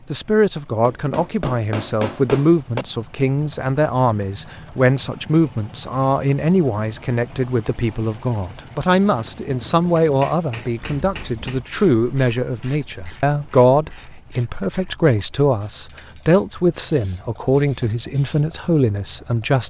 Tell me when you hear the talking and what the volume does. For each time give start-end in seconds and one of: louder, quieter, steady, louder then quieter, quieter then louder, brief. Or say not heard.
0.1-19.6 steady.